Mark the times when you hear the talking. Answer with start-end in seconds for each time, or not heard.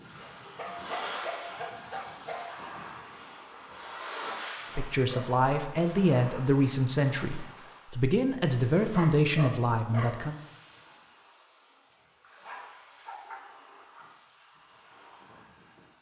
4.8-10.3.